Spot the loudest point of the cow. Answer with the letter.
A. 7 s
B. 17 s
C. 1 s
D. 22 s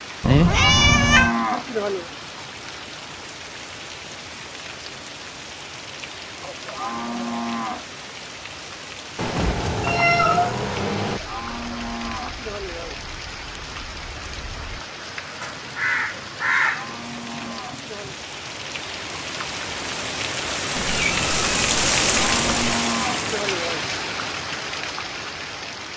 C.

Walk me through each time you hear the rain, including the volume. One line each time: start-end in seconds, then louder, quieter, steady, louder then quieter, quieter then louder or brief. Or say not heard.
0.0-25.9 louder.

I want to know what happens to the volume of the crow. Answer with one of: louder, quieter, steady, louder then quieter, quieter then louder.
louder.